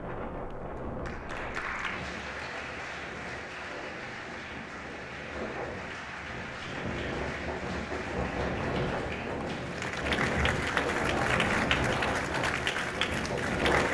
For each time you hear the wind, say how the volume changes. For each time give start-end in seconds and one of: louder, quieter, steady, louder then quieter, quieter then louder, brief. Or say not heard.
0.0-13.8 louder.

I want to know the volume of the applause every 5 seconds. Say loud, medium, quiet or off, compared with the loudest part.
medium, medium, loud.